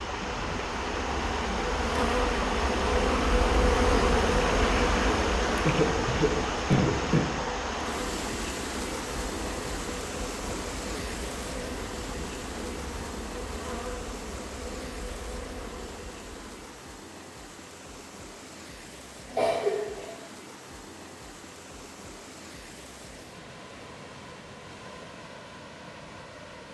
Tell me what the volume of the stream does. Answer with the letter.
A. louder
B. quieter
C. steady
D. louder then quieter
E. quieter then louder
B.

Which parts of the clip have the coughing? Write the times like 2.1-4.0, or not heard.
5.7-7.2, 19.3-20.1.